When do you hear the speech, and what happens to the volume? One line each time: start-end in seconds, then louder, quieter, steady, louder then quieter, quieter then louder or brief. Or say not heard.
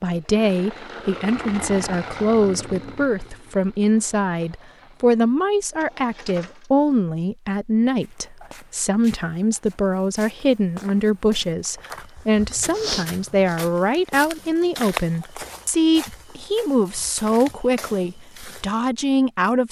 0.0-19.6 steady.